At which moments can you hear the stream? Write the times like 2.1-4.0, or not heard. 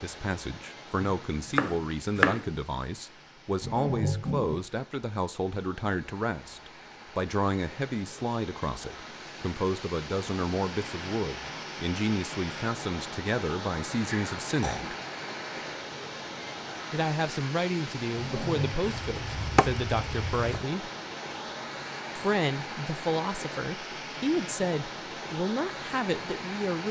0.0-26.8.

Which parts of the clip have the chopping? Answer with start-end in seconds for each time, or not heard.
1.0-2.5, 18.8-20.6.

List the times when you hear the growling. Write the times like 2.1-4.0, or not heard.
3.6-4.7, 14.1-15.0, 18.1-18.8.